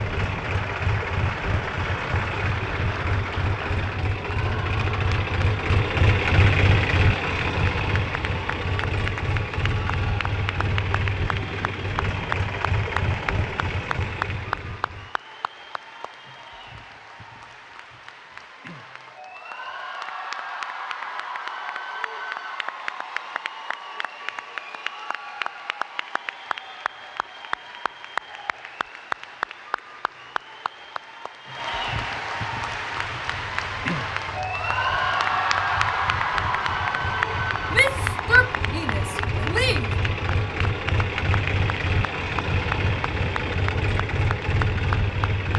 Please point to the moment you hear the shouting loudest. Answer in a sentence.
The loudest moment of the shouting is at 38 seconds.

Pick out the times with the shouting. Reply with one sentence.
You can hear the shouting from 37.7 to 39.9 s.